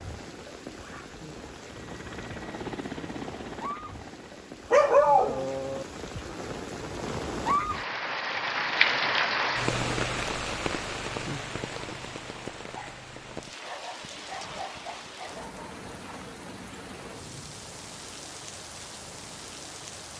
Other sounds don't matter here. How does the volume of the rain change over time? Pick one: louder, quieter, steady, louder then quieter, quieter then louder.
louder then quieter.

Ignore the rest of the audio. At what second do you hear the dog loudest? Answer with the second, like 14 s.
5 s.